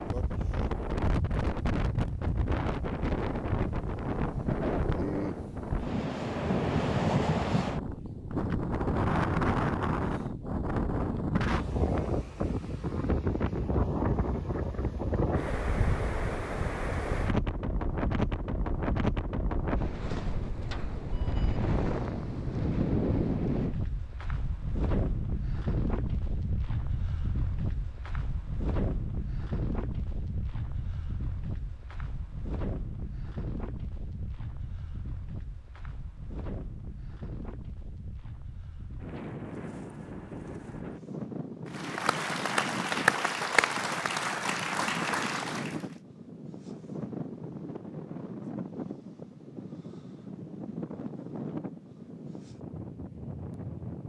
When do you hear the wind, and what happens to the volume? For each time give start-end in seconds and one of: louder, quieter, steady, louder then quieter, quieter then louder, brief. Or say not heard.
0.0-54.0 quieter.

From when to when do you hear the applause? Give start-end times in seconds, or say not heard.
41.6-45.9.